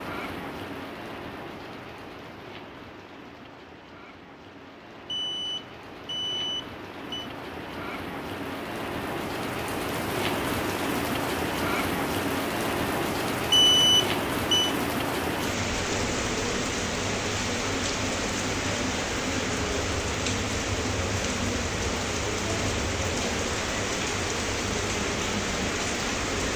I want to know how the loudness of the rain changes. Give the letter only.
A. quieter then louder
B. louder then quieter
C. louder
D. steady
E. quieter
C.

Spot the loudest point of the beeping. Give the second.
14 s.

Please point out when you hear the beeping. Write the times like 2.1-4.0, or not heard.
5.0-7.3, 13.5-14.8.